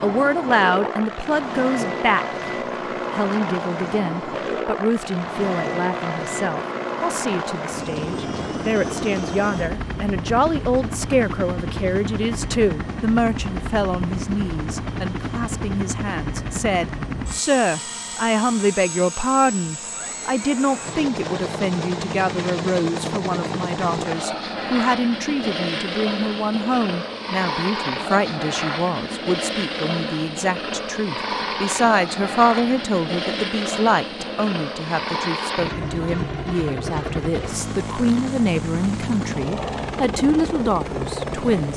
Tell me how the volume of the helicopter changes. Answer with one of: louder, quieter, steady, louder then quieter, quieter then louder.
steady.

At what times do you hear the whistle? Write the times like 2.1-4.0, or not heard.
not heard.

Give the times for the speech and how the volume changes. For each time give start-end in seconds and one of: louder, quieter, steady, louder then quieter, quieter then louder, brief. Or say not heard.
0.0-2.2 brief
3.1-41.7 steady.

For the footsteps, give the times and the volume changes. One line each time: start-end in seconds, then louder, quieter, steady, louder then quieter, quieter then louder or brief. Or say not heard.
not heard.